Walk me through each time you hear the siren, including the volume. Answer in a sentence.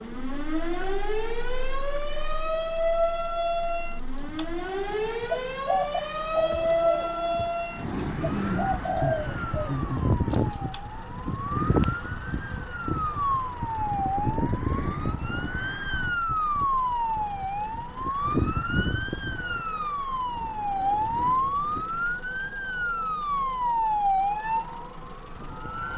You can hear the siren from 0.0 to 25.9 s, at a steady volume.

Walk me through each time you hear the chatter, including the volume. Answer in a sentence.
The chatter can't be heard in this clip.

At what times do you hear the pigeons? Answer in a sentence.
You can hear the pigeons from 4.0 to 11.0 s.